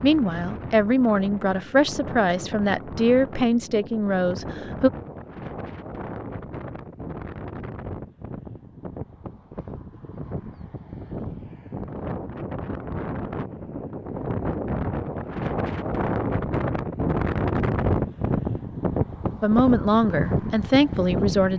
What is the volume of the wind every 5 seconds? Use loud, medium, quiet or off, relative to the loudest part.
medium, medium, medium, loud, loud.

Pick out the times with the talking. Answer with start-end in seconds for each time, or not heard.
0.0-4.9, 19.4-21.5.